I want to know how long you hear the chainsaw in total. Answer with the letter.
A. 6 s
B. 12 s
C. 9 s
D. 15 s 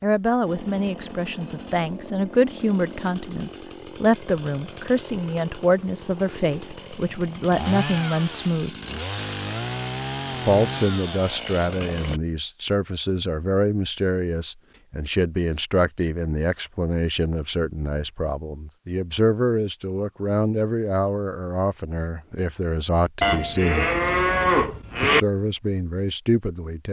B.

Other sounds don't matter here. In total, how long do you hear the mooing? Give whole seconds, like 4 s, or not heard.
2 s.